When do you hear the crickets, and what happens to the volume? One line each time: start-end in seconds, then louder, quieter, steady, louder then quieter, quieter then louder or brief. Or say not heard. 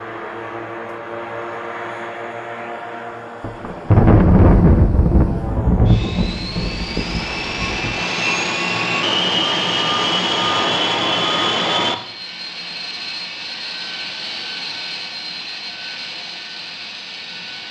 not heard.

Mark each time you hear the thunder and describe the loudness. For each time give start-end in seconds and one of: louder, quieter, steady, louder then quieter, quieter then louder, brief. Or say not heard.
3.4-8.0 quieter.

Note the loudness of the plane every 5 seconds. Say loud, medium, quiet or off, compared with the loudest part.
medium, loud, loud, medium.